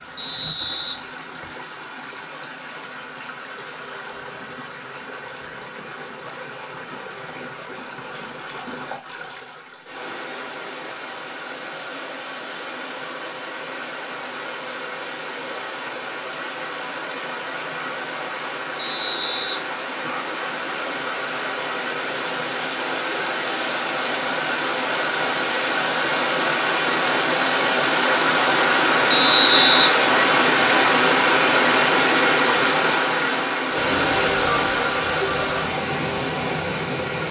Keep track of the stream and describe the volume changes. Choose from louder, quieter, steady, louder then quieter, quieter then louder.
louder.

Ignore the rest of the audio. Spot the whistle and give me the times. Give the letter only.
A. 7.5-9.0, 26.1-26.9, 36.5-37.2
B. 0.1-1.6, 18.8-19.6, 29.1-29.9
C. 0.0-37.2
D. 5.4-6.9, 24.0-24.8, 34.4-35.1
B.